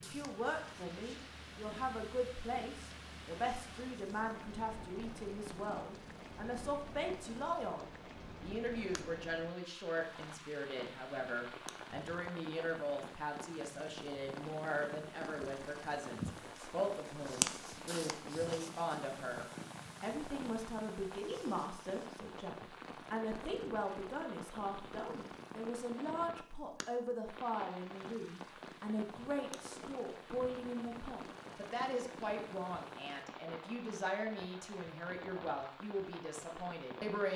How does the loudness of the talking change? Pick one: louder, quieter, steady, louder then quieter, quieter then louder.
steady.